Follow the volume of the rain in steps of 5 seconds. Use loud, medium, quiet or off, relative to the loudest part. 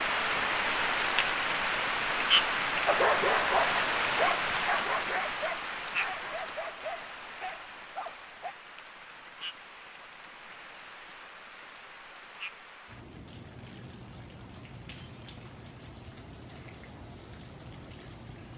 loud, medium, quiet, quiet.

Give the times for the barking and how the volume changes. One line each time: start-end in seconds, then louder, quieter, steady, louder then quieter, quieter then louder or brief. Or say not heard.
2.9-8.6 quieter.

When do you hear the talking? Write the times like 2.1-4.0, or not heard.
not heard.